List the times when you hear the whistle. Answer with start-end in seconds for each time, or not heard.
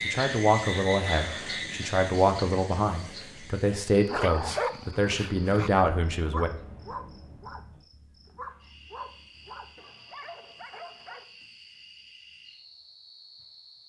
not heard.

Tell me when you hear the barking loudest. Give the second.
5 s.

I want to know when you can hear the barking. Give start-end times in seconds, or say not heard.
4.0-11.2.